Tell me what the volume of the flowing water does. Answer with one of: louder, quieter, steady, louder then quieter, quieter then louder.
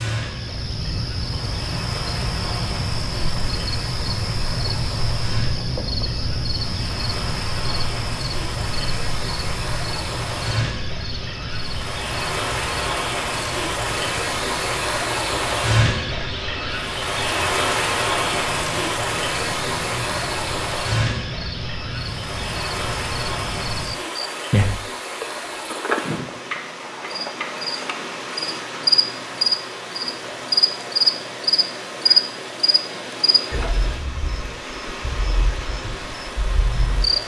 louder then quieter.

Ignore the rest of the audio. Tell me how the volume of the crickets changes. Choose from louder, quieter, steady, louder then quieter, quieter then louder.
quieter then louder.